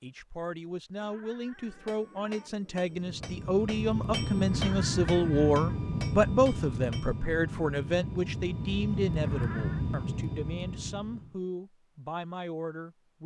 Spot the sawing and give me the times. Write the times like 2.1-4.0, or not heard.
not heard.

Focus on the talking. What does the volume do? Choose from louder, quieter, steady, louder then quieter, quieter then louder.
louder then quieter.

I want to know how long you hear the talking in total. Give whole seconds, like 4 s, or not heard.
13 s.